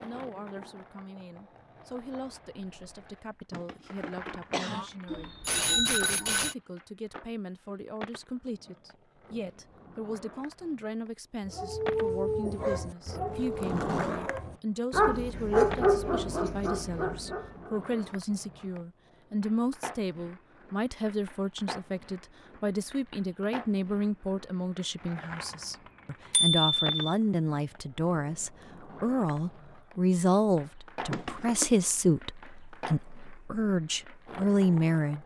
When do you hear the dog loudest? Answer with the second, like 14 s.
16 s.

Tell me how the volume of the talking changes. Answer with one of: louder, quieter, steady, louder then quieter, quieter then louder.
louder.